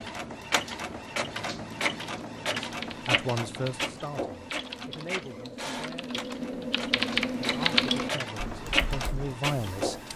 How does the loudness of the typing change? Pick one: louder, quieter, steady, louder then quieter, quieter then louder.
louder then quieter.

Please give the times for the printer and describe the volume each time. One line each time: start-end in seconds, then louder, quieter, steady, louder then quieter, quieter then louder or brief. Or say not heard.
0.0-10.1 quieter then louder.